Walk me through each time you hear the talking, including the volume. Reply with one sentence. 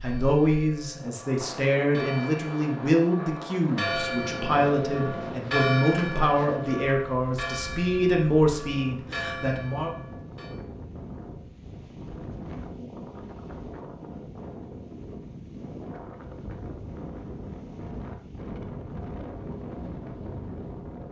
The talking can be heard from 0.0 to 9.9 s, at a steady volume.